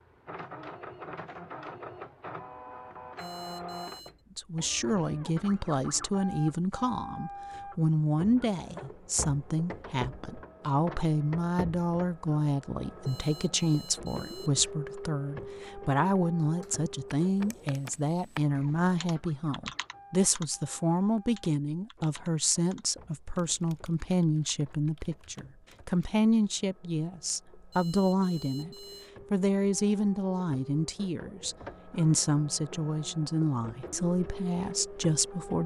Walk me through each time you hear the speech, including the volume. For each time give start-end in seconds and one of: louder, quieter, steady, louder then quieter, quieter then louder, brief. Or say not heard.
4.3-35.6 steady.